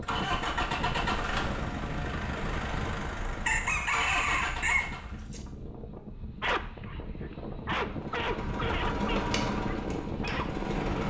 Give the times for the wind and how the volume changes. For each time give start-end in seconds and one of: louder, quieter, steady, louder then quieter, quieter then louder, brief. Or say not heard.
0.0-11.0 quieter then louder.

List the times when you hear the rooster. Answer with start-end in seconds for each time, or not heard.
3.5-5.4.